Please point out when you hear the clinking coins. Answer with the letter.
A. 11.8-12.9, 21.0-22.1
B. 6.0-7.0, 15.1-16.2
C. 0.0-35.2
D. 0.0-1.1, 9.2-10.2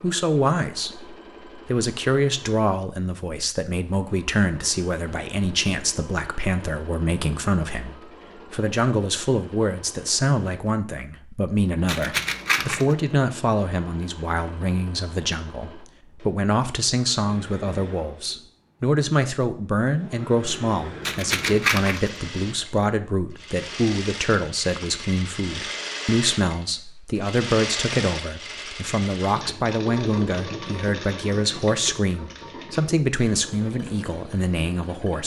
A.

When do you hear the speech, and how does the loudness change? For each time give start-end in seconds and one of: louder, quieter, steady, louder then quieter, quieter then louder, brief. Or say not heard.
0.0-35.2 steady.